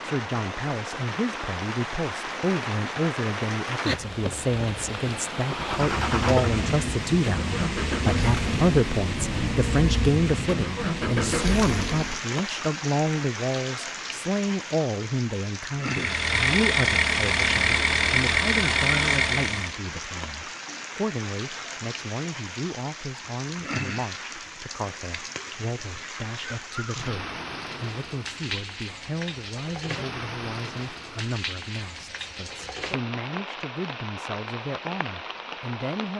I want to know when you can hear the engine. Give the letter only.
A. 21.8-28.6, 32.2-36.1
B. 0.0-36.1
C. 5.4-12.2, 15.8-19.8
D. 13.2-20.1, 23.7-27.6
C.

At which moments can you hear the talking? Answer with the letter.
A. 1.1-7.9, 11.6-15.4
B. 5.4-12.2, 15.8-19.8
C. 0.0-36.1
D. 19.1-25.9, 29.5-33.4
C.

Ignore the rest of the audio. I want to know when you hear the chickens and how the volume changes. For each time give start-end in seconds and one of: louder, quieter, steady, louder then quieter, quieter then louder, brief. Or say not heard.
not heard.